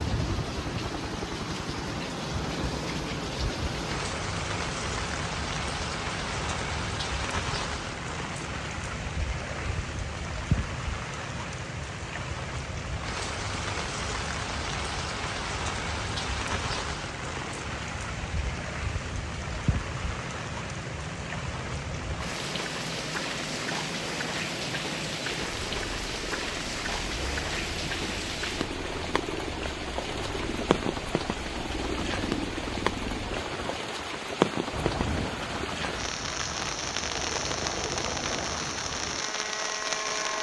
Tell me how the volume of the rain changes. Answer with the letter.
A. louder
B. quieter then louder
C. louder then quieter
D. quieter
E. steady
E.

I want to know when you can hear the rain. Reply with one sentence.
The rain can be heard from 0.0 to 40.3 s.